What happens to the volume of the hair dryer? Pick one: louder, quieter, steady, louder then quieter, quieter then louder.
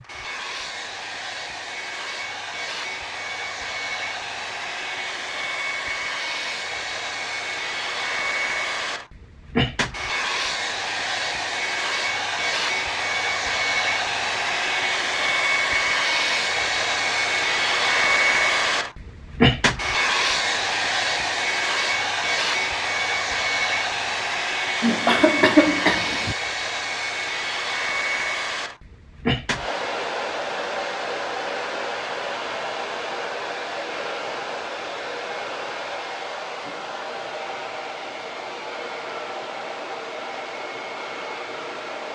louder then quieter.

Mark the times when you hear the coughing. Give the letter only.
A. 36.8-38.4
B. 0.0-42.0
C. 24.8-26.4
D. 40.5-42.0
C.